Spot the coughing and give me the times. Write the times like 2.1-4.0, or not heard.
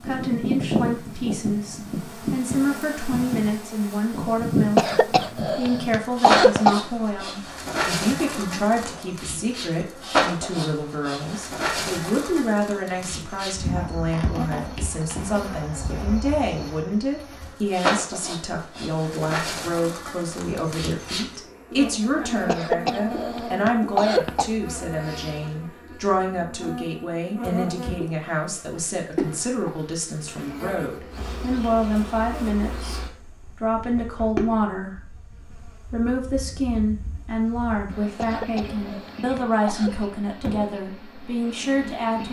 4.8-6.8, 22.4-24.5, 38.1-40.0.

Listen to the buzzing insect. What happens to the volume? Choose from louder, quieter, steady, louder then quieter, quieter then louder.
quieter.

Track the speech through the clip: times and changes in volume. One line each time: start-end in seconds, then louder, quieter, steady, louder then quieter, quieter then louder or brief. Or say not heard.
0.0-42.2 steady.